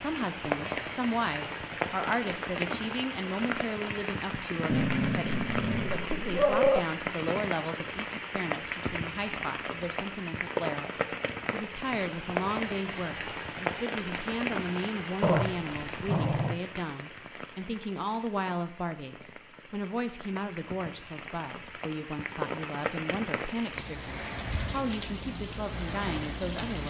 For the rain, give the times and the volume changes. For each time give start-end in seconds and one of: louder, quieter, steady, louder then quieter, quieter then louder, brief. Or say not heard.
0.0-26.8 quieter then louder.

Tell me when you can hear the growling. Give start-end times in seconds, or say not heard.
4.7-6.8, 15.2-16.6.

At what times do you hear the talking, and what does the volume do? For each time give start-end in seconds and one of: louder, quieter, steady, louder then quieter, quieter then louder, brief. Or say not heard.
0.0-26.8 steady.